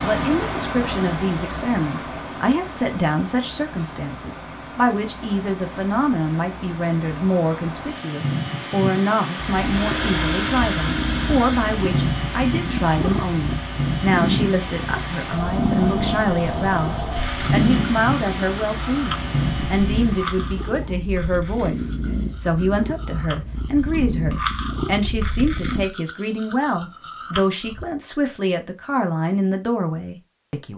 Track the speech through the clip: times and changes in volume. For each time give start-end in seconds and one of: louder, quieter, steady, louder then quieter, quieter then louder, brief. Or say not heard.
0.0-30.7 steady.